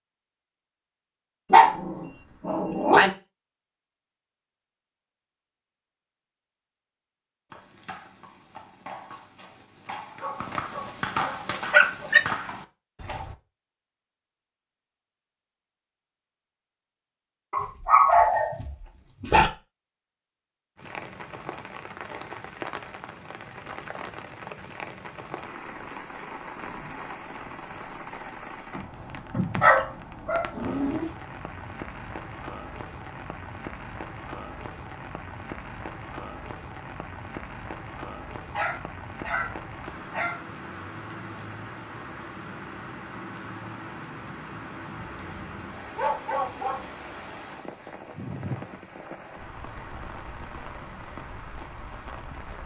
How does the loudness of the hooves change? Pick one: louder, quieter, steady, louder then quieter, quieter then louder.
louder.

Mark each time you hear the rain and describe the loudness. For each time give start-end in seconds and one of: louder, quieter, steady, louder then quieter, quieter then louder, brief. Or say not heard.
20.8-52.6 steady.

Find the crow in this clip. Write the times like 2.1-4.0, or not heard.
not heard.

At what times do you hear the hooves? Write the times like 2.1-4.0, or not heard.
7.5-13.3.